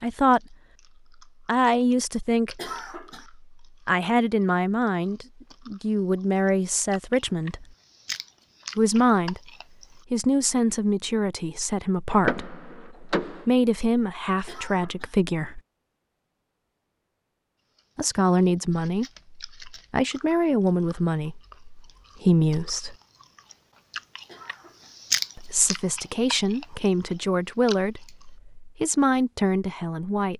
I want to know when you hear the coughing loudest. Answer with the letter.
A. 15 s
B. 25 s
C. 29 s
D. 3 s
D.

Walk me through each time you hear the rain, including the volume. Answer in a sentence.
You can't hear the rain here.